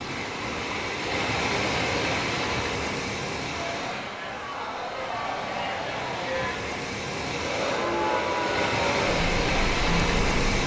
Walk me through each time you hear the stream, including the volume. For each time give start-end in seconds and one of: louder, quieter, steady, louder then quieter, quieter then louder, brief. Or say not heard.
0.0-10.6 quieter then louder.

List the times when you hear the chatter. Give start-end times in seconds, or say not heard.
3.4-10.5.